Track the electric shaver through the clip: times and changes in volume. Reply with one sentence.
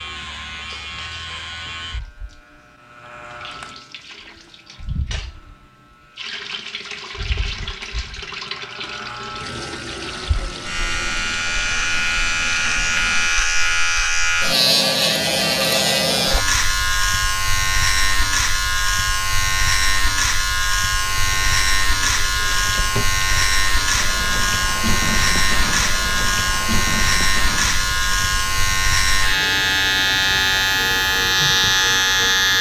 You can hear the electric shaver from 0.0 to 32.5 s, getting louder.